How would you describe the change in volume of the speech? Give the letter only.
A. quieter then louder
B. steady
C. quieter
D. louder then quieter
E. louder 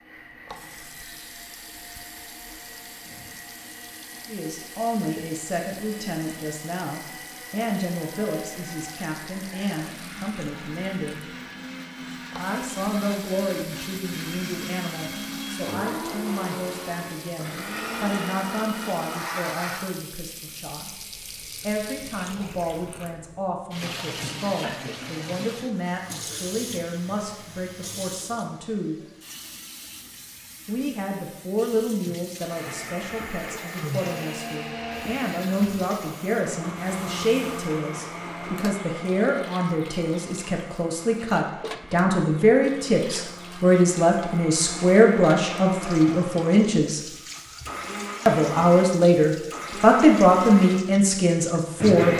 E.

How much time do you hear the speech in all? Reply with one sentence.
You can hear the speech for 43 seconds altogether.